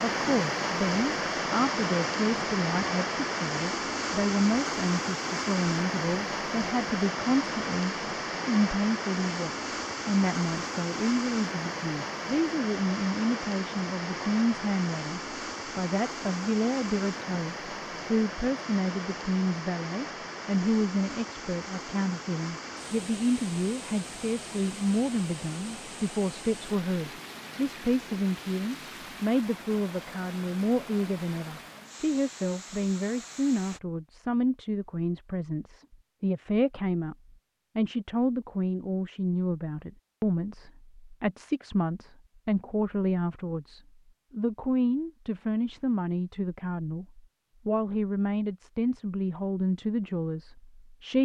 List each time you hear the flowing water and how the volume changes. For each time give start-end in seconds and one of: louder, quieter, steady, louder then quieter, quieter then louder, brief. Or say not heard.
0.0-33.8 quieter.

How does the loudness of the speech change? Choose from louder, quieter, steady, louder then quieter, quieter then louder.
steady.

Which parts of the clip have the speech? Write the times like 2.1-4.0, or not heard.
0.0-37.1, 37.8-51.2.